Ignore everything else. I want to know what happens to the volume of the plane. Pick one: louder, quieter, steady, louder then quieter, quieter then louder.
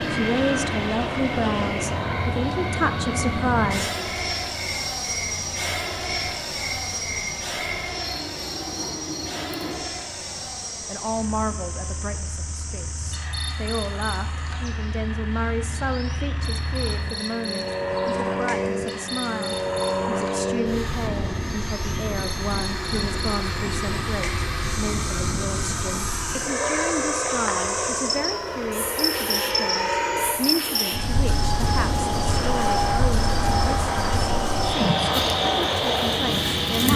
quieter then louder.